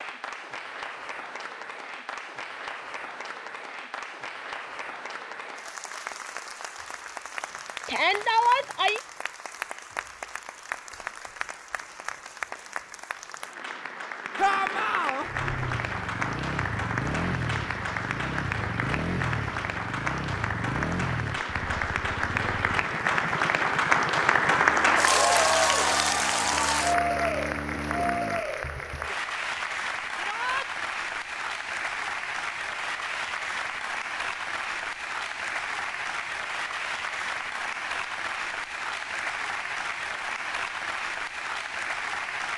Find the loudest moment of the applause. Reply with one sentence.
The volume of the applause peaks at 25 seconds.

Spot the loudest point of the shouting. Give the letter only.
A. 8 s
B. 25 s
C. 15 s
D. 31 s
A.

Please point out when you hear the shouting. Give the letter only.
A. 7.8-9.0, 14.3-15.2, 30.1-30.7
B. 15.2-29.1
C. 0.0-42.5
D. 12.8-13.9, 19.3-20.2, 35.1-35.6
A.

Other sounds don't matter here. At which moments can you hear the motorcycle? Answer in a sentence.
The motorcycle can be heard from 15.2 to 29.1 s.